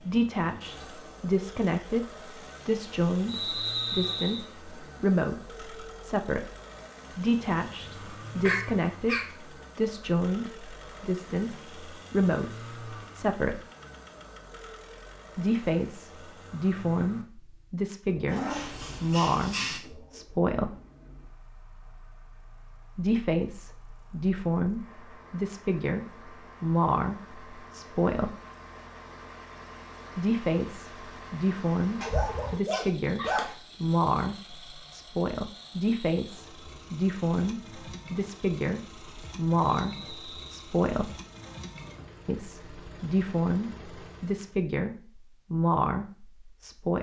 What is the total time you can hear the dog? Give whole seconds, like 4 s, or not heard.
5 s.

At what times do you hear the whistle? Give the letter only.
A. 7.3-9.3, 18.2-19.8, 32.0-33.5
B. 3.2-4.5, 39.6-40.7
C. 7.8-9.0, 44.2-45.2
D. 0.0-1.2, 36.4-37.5
B.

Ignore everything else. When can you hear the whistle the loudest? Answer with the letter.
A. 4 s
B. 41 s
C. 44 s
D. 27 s
A.